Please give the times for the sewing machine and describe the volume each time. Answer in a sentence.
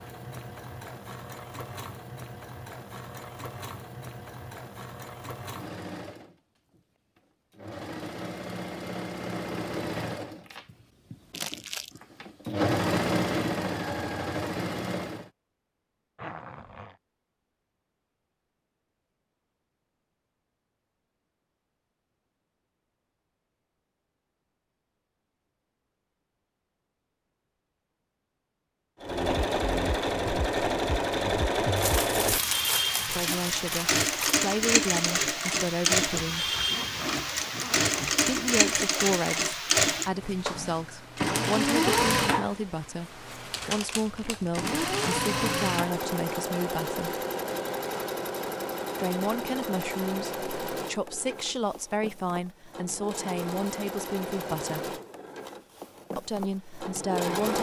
You can hear the sewing machine from 0.0 to 15.3 s, getting louder; and from 29.0 to 57.5 s, getting quieter.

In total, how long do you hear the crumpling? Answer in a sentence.
You can hear the crumpling for 5 seconds altogether.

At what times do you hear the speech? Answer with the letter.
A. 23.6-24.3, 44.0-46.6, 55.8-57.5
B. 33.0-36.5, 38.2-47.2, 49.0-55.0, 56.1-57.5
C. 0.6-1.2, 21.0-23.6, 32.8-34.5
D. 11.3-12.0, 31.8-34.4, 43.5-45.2
B.